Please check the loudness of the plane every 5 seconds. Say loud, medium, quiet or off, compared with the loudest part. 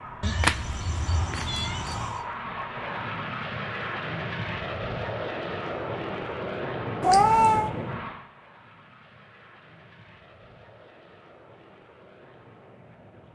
loud, loud, quiet.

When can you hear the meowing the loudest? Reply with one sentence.
The loudest moment of the meowing is at 7 seconds.